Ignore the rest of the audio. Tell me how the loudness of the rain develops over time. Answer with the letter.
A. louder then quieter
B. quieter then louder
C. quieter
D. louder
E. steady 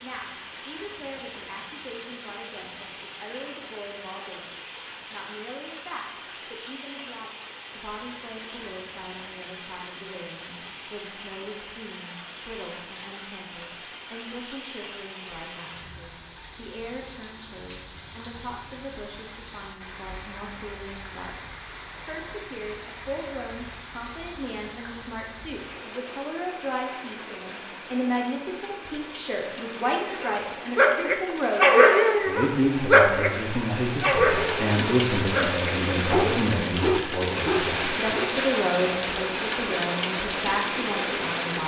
D.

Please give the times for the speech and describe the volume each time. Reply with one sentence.
You can hear the speech from 0.0 to 41.6 s, getting louder.